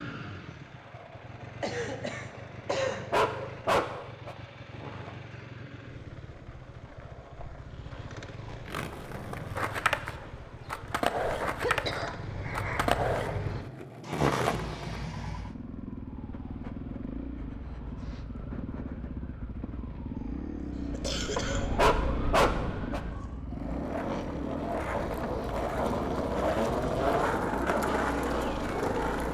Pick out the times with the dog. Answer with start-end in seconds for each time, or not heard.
2.7-4.3, 21.4-23.0.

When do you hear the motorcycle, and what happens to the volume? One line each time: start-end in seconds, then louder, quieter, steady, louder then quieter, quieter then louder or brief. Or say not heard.
0.0-29.2 louder.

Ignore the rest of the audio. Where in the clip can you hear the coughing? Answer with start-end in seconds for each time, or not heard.
1.6-3.1, 11.6-13.7, 20.1-21.6.